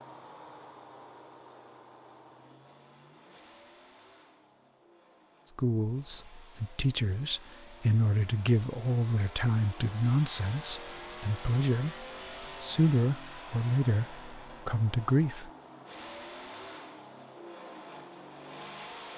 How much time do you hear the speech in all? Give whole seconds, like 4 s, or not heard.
10 s.